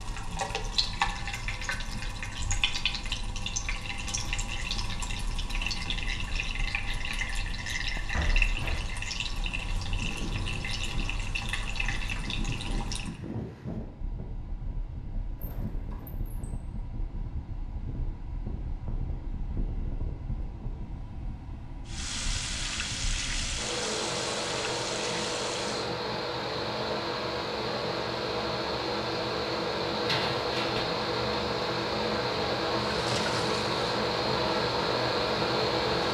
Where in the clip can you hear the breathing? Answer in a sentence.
The breathing can't be heard in this clip.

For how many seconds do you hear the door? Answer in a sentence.
The door can be heard for 3 seconds in total.